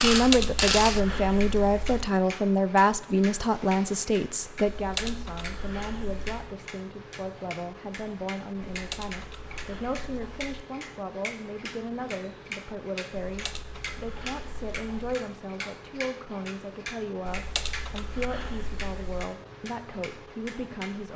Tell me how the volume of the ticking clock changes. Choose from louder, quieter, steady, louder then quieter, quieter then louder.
quieter.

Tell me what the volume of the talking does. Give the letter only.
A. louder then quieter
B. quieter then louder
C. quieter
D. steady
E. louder
C.